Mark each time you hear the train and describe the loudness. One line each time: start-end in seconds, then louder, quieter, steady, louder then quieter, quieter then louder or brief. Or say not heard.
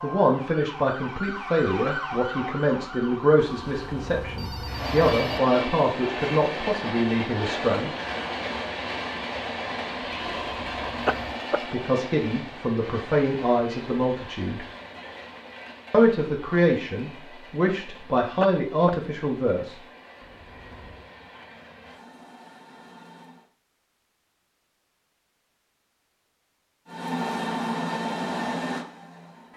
4.7-23.5 quieter
26.9-29.5 brief.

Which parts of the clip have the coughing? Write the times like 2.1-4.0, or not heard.
11.1-11.6, 18.4-18.9.